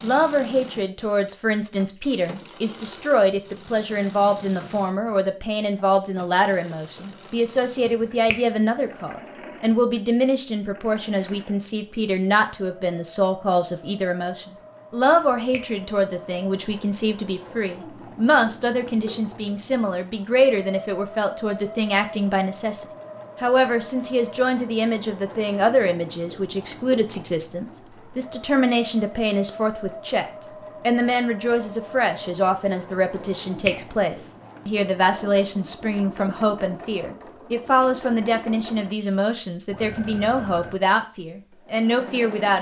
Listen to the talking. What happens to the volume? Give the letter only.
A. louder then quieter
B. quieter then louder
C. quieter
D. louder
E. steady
E.